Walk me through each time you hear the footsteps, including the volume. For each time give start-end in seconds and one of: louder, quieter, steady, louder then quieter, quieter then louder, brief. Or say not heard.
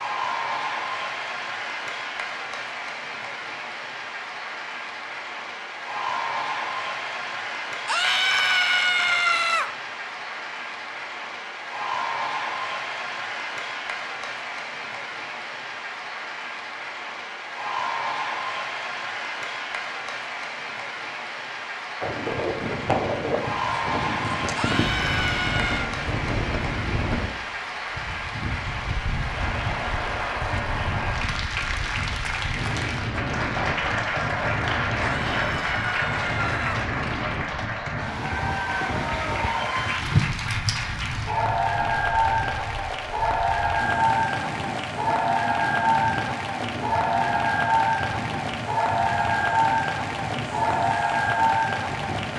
not heard.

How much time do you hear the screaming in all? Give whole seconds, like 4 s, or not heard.
5 s.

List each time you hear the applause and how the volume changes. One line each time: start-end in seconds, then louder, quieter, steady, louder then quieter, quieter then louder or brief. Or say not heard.
0.0-52.3 louder.